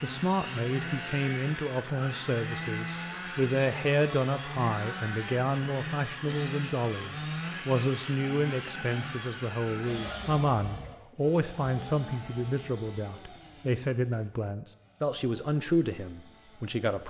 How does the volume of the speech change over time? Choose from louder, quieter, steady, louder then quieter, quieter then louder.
steady.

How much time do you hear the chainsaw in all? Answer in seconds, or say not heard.
17 s.